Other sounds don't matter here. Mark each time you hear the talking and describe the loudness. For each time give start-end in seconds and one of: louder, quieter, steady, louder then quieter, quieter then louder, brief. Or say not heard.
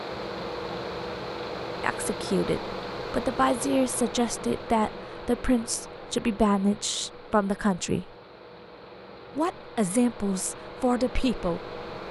1.8-8.1 steady
9.3-11.8 brief.